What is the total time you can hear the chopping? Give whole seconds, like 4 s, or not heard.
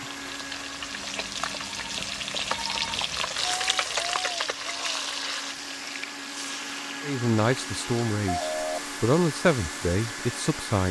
not heard.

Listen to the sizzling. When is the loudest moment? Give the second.
4 s.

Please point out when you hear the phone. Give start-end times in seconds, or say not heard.
0.9-3.0, 8.2-8.8.